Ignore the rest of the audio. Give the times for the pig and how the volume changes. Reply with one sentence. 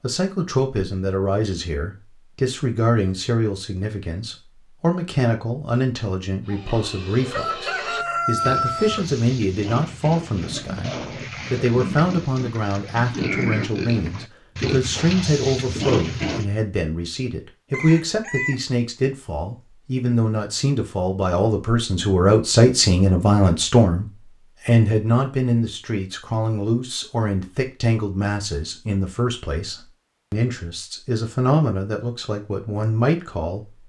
You can hear the pig from 6.5 to 16.4 s, getting louder.